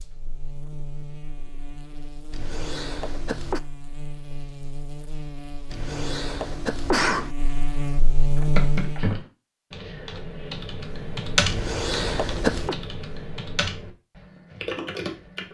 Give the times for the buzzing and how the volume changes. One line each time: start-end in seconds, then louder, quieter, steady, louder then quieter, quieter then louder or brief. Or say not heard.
0.0-9.2 louder.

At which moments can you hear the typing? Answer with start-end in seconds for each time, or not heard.
8.3-15.4.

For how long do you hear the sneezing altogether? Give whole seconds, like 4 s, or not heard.
4 s.